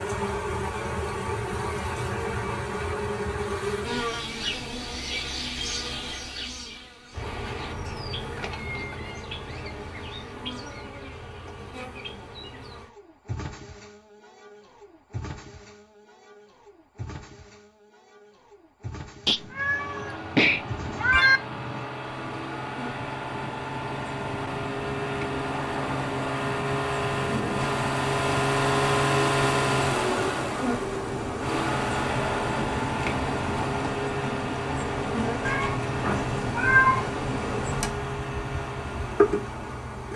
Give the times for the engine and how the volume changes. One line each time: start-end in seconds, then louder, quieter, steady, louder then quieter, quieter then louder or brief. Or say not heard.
19.6-40.1 louder then quieter.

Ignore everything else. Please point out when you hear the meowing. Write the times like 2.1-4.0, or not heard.
7.8-9.3, 19.2-21.4, 35.5-37.1.